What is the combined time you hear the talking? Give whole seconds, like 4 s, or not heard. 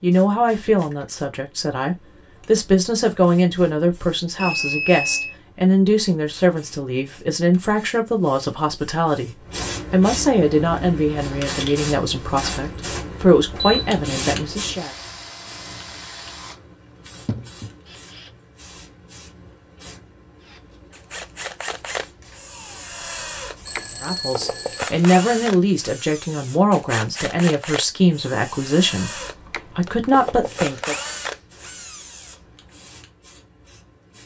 22 s.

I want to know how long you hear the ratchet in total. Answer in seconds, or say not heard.
not heard.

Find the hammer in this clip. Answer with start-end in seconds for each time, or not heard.
not heard.